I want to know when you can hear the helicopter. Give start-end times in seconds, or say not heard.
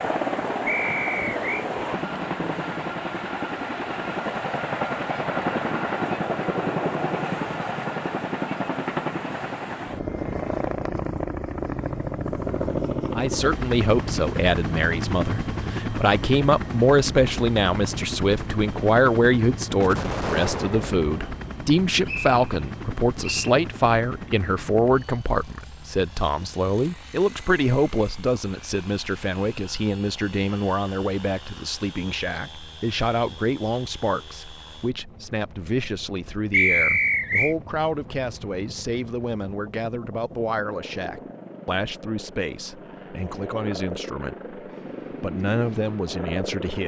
0.0-46.8.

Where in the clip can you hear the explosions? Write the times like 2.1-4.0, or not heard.
19.8-21.3.